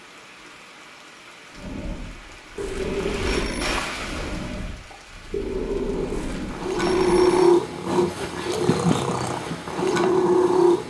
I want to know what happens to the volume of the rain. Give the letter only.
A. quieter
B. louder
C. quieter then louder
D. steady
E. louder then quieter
E.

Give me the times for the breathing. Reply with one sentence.
The breathing can be heard from 1.5 to 7.1 s.